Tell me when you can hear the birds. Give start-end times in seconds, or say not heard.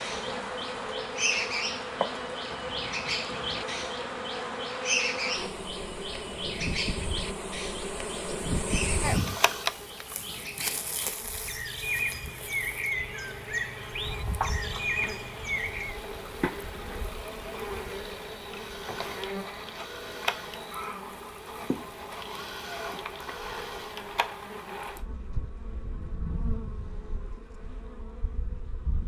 0.0-16.0.